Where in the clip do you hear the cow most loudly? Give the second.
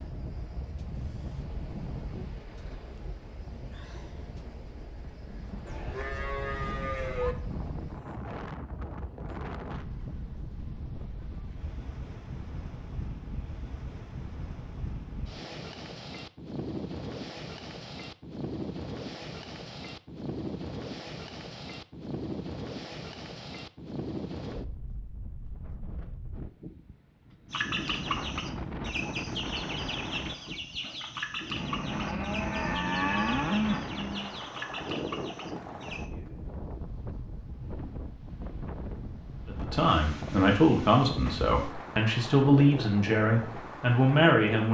34 s.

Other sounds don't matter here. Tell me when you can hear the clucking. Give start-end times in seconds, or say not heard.
27.5-36.1.